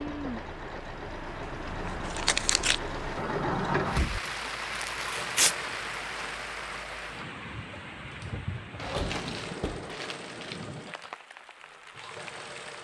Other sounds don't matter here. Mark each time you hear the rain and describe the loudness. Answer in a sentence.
The rain can be heard from 0.0 to 12.8 s, getting louder then quieter.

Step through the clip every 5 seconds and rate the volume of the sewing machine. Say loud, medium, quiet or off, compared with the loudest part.
loud, medium, medium.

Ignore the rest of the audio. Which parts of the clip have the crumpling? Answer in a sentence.
You can hear the crumpling from 1.9 to 2.8 s, from 4.8 to 5.5 s and from 8.8 to 10.7 s.